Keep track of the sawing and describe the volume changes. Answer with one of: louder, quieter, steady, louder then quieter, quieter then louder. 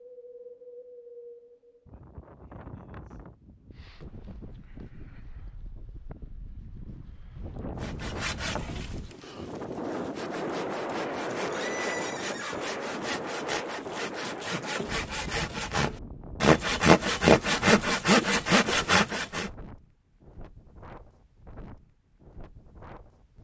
louder.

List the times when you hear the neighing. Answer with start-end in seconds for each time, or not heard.
11.3-12.7.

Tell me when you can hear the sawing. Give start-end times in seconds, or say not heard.
7.8-19.5.